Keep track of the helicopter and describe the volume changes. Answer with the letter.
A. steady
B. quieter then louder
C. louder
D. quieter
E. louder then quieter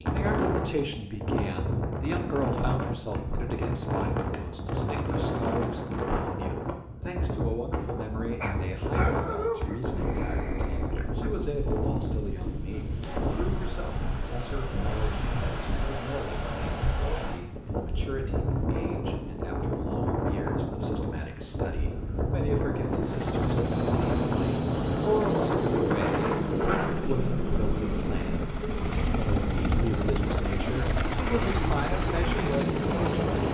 A.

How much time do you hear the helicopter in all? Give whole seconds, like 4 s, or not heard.
11 s.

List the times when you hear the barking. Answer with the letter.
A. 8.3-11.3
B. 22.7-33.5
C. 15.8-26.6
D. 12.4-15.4
A.